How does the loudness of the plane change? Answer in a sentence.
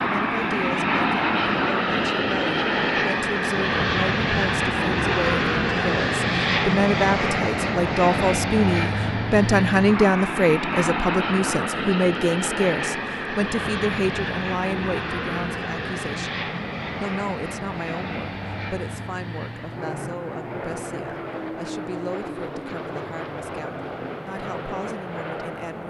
The loudness of the plane goes down.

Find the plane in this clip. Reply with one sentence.
The plane can be heard from 0.0 to 25.8 s.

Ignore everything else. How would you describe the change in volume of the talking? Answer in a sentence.
The loudness of the talking goes up, then down.